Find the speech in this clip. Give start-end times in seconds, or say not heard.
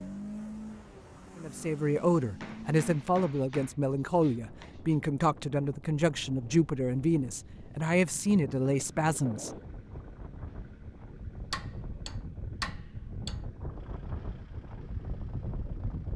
1.4-9.6.